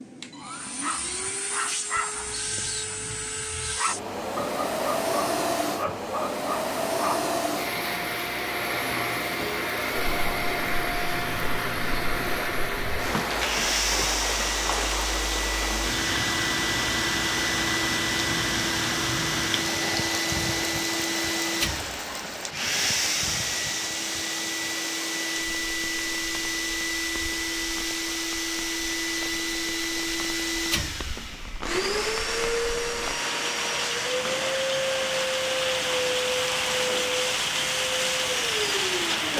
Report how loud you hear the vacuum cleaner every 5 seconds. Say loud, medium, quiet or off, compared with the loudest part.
medium, loud, loud, loud, loud, loud, loud, loud.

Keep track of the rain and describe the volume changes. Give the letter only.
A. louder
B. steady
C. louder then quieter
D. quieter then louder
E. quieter
D.